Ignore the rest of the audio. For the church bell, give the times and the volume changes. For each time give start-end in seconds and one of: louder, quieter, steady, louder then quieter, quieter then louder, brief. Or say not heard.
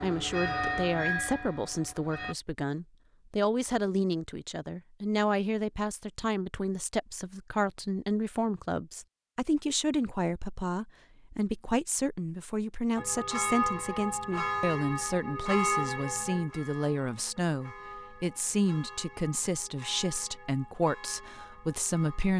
0.0-2.4 brief
12.9-22.3 quieter.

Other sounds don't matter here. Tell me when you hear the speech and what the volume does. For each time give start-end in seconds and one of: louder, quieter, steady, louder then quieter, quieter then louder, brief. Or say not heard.
0.0-22.3 steady.